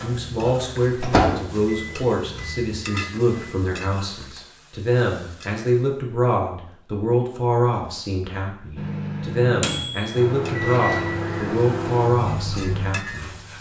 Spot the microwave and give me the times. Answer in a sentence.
The microwave can be heard from 0.0 to 3.7 s and from 8.8 to 13.5 s.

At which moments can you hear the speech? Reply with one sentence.
The speech can be heard from 0.0 to 13.3 s.